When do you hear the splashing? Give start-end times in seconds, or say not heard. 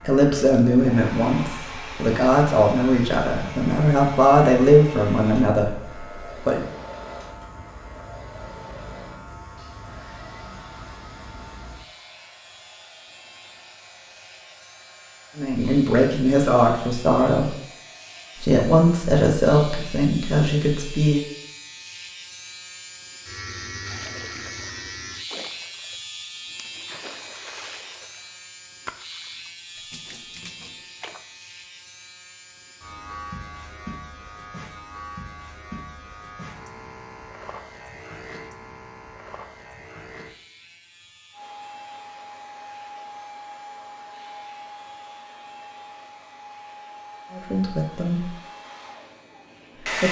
23.9-31.2.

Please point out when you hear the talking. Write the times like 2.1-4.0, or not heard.
0.0-6.7, 15.3-17.6, 18.4-21.2, 47.3-48.3.